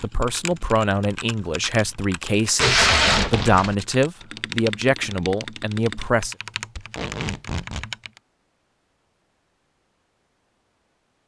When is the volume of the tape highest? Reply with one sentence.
The volume of the tape peaks at 3 seconds.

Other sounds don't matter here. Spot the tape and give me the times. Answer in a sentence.
You can hear the tape from 2.5 to 3.8 s and from 6.8 to 7.8 s.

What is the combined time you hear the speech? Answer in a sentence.
The speech can be heard for 6 seconds in total.